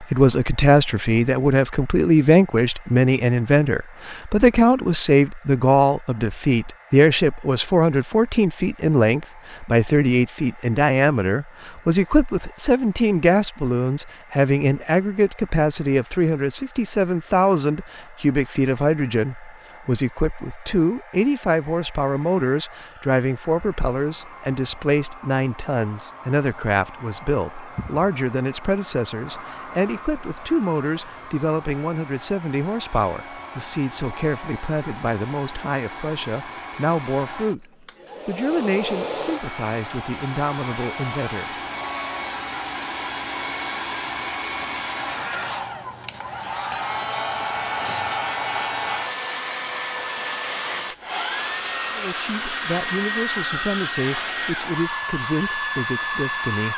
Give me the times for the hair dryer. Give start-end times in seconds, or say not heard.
0.0-56.7.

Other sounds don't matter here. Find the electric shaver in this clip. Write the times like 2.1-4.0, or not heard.
not heard.